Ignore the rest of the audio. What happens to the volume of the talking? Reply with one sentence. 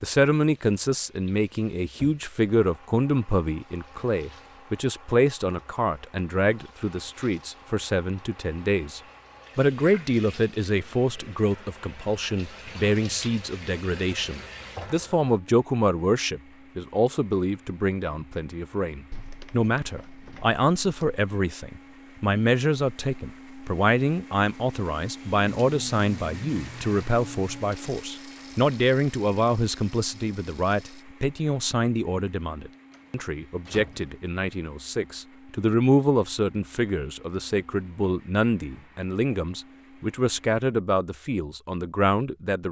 The volume of the talking stays about the same.